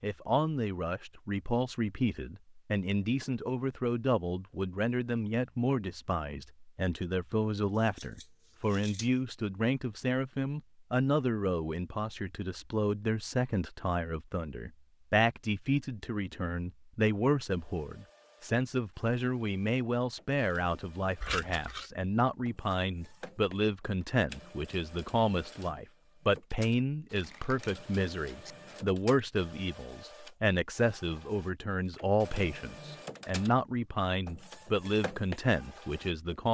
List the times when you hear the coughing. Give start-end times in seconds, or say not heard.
not heard.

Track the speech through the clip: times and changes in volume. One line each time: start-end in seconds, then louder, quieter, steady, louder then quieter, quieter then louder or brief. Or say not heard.
0.0-36.4 steady.